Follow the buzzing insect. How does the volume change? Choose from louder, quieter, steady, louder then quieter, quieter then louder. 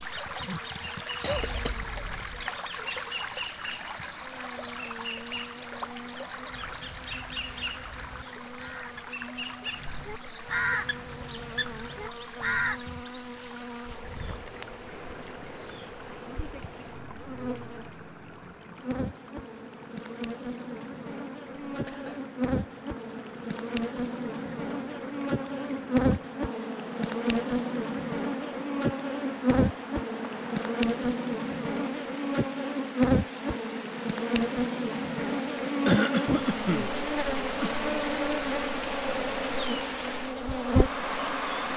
louder.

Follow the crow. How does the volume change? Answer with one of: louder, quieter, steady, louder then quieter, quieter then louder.
louder then quieter.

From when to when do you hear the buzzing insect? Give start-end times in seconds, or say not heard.
0.0-41.7.